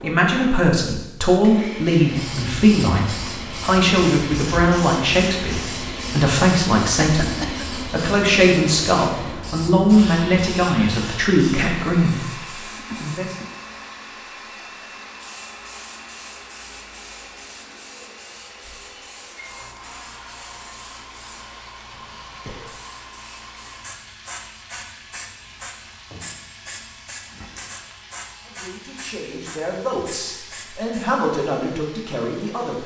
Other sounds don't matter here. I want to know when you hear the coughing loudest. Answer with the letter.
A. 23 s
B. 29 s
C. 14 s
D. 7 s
D.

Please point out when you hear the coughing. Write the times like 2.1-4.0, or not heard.
7.0-7.7, 12.7-13.5, 21.9-22.8.